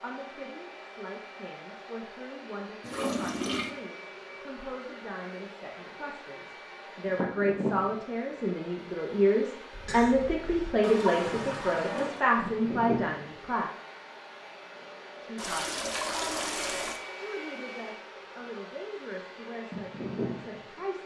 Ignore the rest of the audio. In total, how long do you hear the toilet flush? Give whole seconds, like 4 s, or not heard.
4 s.